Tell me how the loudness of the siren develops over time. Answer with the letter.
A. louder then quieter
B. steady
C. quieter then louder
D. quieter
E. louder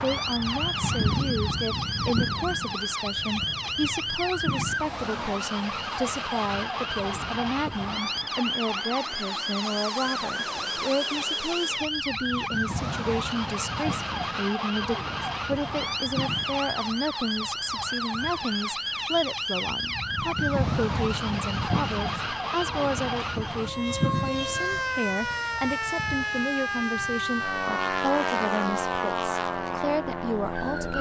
B.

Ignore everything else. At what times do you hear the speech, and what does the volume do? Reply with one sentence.
You can hear the speech from 0.0 to 30.9 s, at a steady volume.